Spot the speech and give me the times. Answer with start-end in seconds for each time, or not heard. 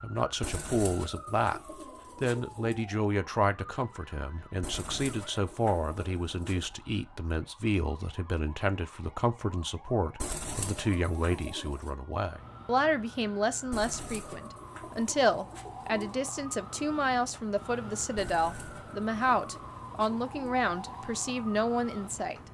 0.0-1.6, 2.2-22.4.